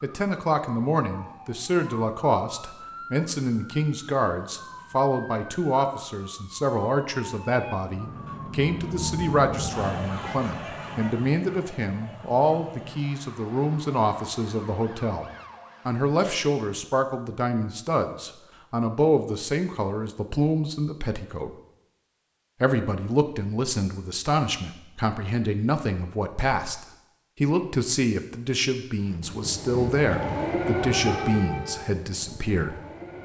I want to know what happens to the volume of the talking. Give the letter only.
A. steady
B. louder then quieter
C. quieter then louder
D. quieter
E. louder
A.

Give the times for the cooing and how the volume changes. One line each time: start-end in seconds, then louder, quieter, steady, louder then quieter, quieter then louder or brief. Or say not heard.
not heard.